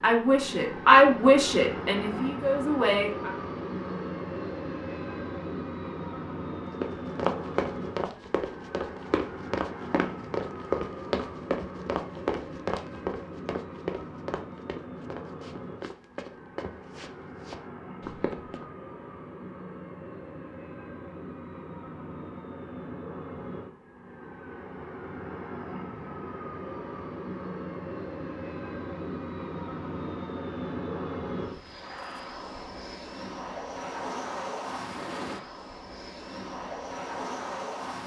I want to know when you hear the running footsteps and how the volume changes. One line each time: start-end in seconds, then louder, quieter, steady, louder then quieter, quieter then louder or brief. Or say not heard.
6.8-18.6 quieter.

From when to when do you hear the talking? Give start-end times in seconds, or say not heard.
0.0-3.3.